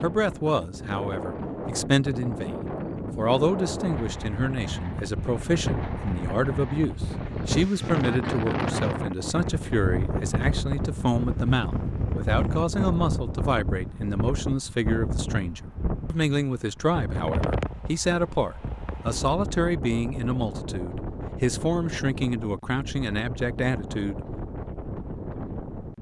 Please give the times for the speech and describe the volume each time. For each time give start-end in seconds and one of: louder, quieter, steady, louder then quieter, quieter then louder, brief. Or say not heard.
0.0-24.2 steady.